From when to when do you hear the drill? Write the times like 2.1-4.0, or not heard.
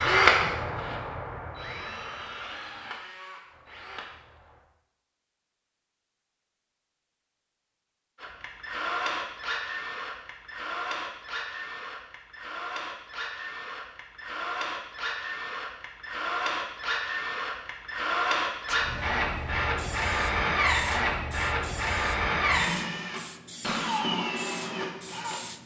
0.0-4.6, 8.2-25.4.